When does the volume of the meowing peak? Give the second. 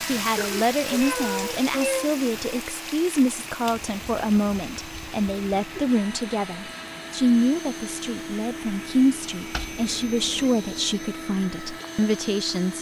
2 s.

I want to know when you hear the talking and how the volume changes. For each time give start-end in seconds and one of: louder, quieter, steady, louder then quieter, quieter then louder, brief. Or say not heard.
0.1-12.7 steady.